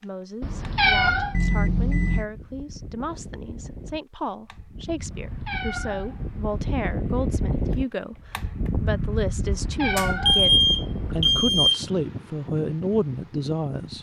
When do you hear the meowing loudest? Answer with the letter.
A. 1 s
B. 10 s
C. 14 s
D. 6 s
A.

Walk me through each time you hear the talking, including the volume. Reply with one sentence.
The talking can be heard from 0.0 to 13.9 s, getting louder.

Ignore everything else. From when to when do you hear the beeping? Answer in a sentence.
You can hear the beeping from 1.3 to 2.2 s and from 9.9 to 11.8 s.